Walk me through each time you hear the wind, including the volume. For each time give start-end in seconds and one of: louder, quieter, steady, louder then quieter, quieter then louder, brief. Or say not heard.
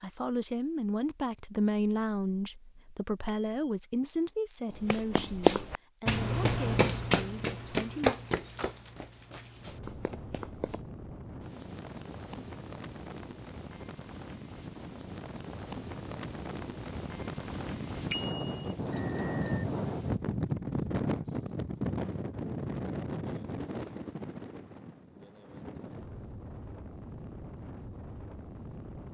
9.5-29.0 louder then quieter.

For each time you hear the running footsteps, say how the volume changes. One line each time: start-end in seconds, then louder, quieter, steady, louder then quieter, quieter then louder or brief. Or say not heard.
4.7-10.8 quieter.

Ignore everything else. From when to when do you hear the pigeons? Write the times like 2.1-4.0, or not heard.
not heard.